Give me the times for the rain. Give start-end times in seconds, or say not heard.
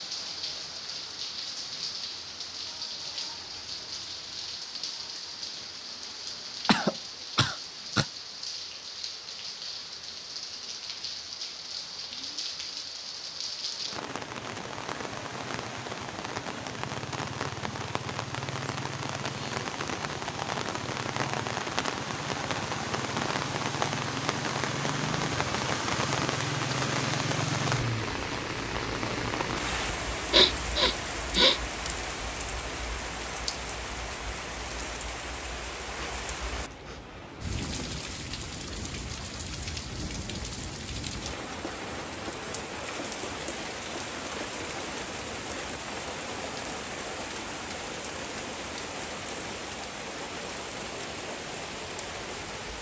0.0-52.7.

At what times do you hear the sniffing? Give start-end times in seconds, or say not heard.
6.7-8.1, 30.3-31.6, 36.0-37.0.